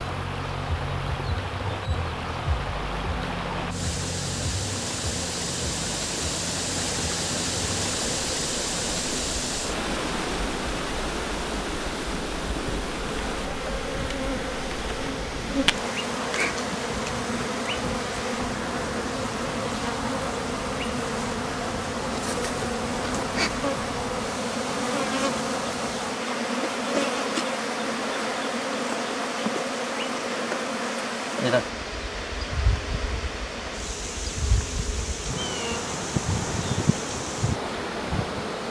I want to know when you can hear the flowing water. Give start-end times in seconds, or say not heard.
0.0-38.6.